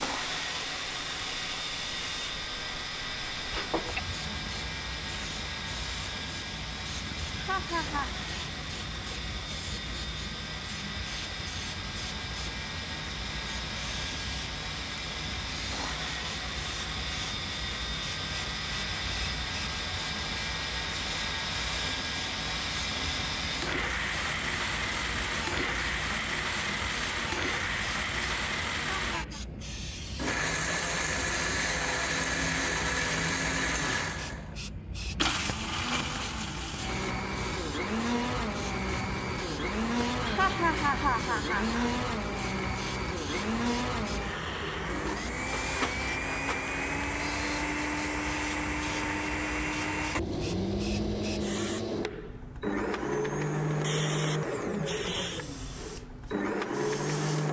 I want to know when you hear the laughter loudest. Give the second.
41 s.